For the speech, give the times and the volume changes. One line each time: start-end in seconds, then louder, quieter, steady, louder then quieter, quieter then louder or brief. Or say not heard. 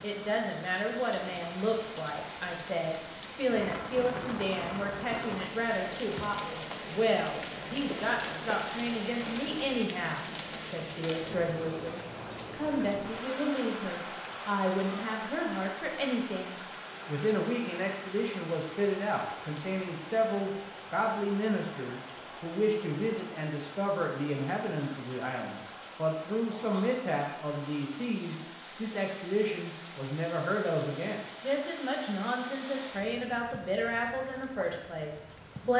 0.0-35.7 steady.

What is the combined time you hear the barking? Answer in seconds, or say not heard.
not heard.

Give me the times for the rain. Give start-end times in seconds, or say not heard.
0.0-35.7.